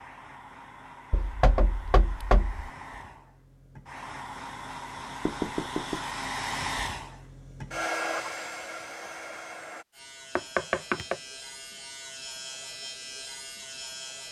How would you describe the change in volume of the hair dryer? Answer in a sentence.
The loudness of the hair dryer goes up.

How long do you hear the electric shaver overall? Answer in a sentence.
The electric shaver can be heard for 4 seconds in total.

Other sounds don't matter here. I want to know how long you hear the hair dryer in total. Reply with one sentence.
You can hear the hair dryer for 10 seconds altogether.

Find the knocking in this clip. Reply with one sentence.
You can hear the knocking from 1.1 to 2.7 s, from 5.2 to 6.0 s and from 10.3 to 11.2 s.